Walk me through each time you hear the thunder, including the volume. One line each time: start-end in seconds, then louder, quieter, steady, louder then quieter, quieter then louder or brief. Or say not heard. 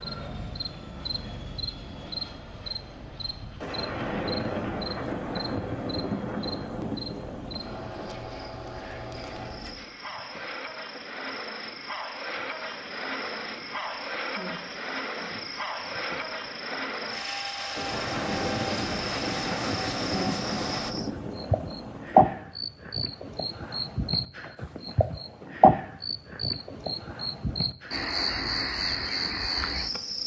3.6-8.2 quieter
17.8-22.4 quieter.